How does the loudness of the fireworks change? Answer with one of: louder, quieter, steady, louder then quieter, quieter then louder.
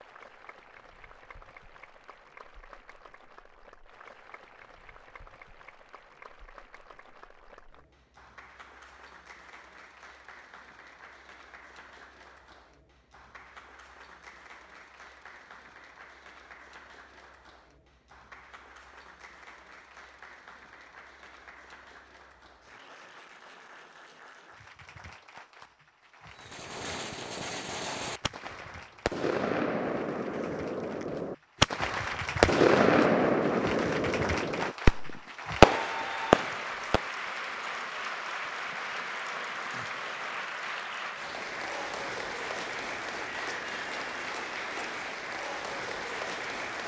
louder.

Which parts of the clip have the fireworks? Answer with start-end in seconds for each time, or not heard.
26.4-37.0.